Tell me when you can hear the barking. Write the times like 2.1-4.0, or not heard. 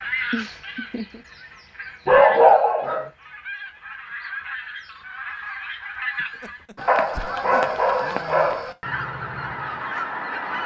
2.0-3.0, 6.8-8.7.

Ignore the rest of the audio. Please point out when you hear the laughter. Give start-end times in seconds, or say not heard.
0.3-1.2, 6.2-7.8.